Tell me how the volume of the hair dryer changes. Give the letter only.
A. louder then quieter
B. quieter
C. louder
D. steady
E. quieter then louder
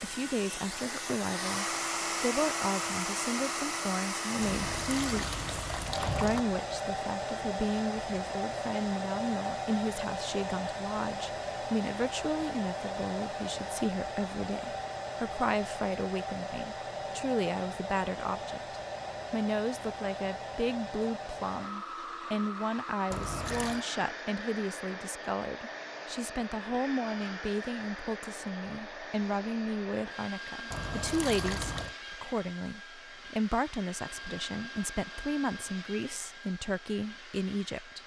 B.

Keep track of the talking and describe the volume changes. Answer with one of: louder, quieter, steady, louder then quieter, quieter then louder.
steady.